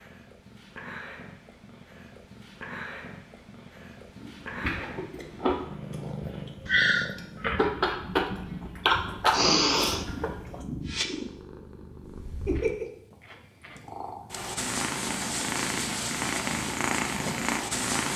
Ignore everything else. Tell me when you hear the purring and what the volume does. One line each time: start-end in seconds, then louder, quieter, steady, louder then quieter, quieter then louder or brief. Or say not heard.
0.0-18.1 louder.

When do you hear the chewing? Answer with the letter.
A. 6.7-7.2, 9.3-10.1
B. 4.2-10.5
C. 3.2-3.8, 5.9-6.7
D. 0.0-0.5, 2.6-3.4
B.